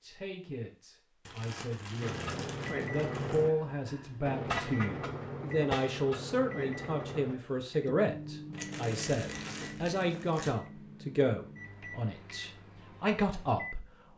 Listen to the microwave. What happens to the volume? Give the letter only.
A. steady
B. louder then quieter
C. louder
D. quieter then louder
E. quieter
E.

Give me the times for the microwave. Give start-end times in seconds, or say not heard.
2.0-14.1.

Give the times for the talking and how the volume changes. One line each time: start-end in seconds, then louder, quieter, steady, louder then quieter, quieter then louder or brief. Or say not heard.
0.0-14.1 louder.